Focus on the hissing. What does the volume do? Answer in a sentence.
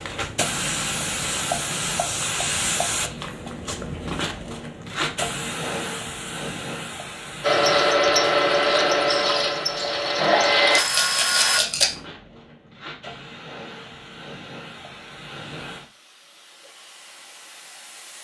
The loudness of the hissing goes down.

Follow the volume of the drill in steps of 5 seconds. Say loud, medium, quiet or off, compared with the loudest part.
off, loud, loud, off.